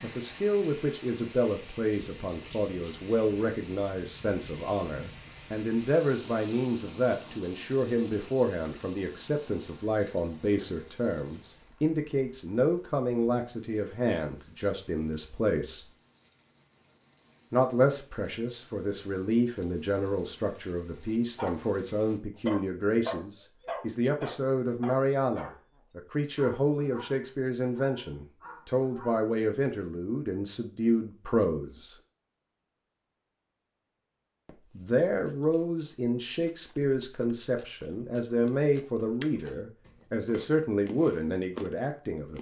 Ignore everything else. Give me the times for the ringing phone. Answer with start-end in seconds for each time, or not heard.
not heard.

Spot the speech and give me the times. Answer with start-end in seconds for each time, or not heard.
0.0-15.9, 17.5-31.9, 34.5-42.3.